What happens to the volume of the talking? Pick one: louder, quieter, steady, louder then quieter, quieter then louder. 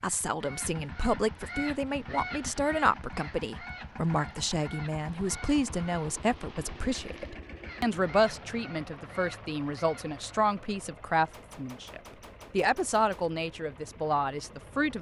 steady.